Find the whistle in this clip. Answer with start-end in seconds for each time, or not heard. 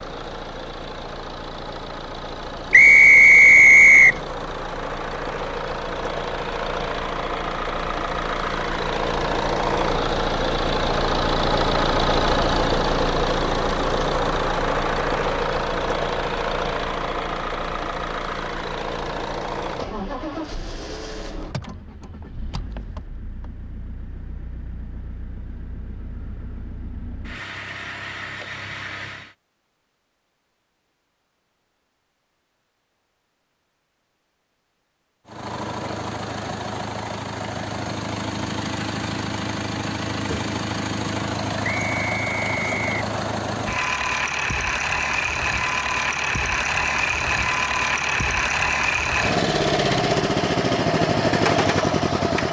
2.7-4.2, 41.6-42.9.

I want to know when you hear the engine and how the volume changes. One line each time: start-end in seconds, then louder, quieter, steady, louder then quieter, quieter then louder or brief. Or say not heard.
0.0-29.4 louder then quieter
35.2-52.4 louder.